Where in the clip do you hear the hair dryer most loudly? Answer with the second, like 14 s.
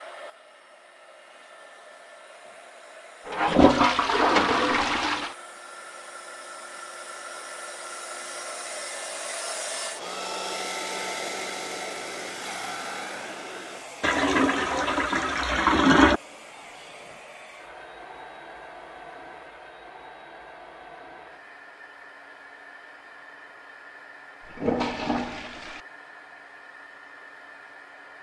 11 s.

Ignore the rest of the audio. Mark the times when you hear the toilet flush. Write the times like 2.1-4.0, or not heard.
3.2-5.3, 14.0-16.2, 24.4-25.8.